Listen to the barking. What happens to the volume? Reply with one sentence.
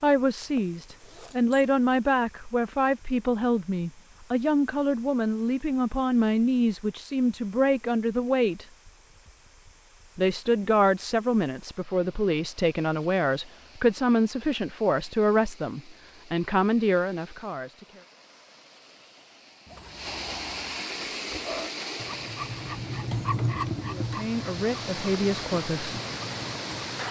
The volume of the barking goes up, then down.